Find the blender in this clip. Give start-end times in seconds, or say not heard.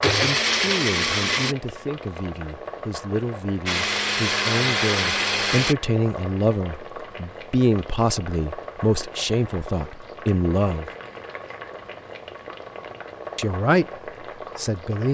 0.0-1.6, 3.6-5.8.